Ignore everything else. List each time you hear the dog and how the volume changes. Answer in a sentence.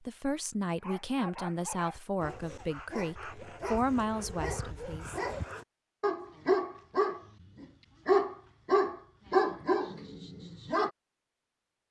The dog can be heard from 0.7 to 10.9 s, getting louder.